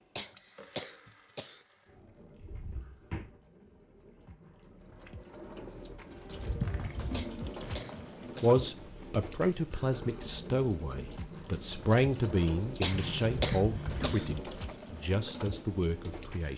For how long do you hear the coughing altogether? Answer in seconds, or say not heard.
5 s.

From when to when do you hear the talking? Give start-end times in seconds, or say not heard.
8.4-16.5.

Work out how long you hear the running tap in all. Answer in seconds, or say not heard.
16 s.